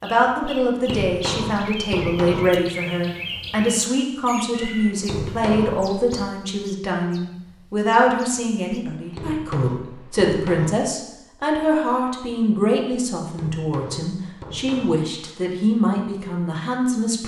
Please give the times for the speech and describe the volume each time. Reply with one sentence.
The speech can be heard from 0.0 to 17.2 s, at a steady volume.